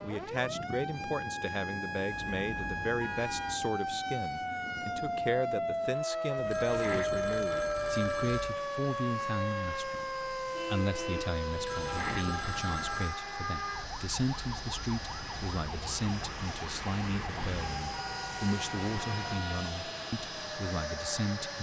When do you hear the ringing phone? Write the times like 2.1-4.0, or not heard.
6.3-8.6, 11.5-13.2.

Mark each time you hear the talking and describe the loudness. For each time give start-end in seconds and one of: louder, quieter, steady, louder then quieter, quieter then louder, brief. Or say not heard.
0.0-21.5 steady.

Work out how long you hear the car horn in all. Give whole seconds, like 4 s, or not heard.
5 s.